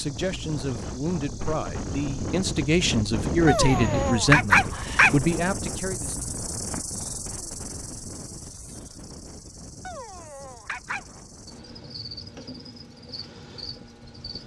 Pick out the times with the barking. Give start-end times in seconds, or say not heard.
3.5-5.1, 9.8-11.2.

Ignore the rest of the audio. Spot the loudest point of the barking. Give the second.
4 s.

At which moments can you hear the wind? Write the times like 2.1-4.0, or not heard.
0.0-14.4.